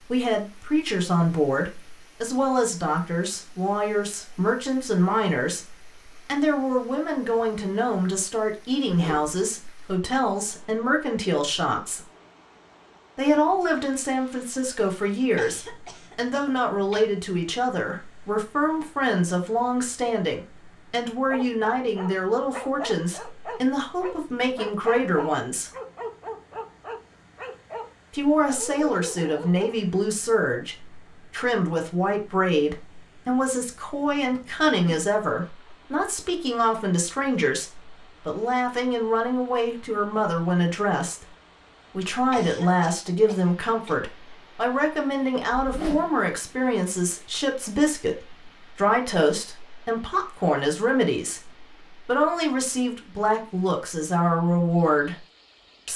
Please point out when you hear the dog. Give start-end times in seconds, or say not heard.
21.2-29.8.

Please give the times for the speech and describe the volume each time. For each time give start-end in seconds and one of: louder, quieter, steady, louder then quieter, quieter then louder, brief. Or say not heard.
0.1-12.0 steady
13.2-25.7 steady
28.1-41.3 steady
41.9-55.2 steady.